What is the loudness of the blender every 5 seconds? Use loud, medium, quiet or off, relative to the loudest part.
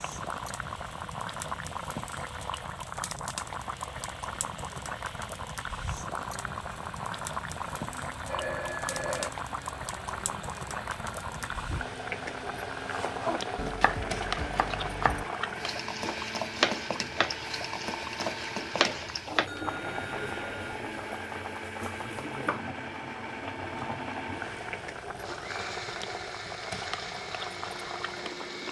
medium, medium, loud, loud, loud, loud.